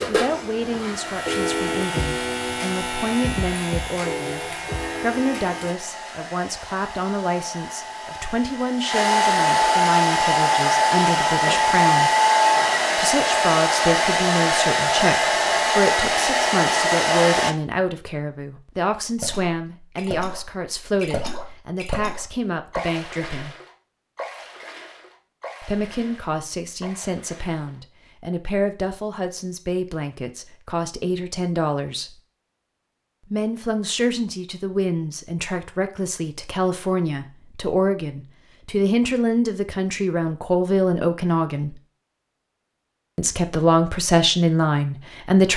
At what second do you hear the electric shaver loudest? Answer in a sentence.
The loudest moment of the electric shaver is at 2 seconds.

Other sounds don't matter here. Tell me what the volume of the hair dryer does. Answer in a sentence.
The loudness of the hair dryer goes up.